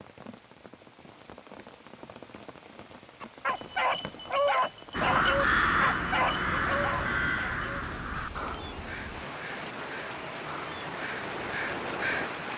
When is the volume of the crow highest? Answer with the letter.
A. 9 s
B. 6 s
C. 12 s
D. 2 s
B.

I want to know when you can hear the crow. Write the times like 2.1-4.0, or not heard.
4.9-12.3.